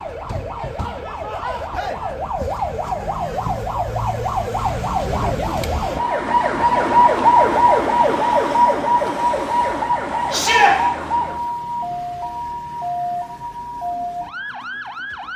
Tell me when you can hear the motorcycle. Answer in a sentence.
You can't hear the motorcycle here.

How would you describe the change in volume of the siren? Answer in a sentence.
The loudness of the siren goes up, then down.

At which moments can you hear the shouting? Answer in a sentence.
The shouting can be heard from 10.3 to 10.8 s.